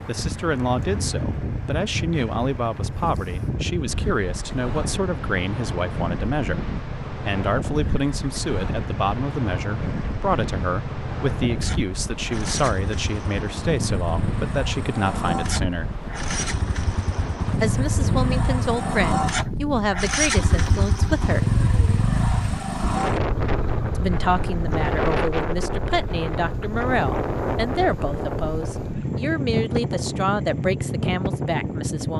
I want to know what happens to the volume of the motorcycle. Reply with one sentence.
The loudness of the motorcycle goes up, then down.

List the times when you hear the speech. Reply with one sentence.
The speech can be heard from 0.1 to 15.9 s, from 17.6 to 21.6 s and from 23.9 to 32.1 s.